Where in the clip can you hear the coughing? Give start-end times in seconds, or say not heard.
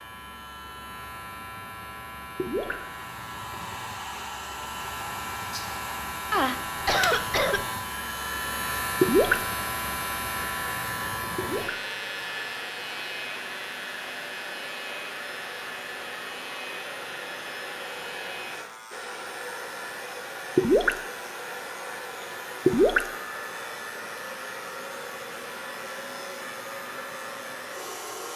6.3-7.7.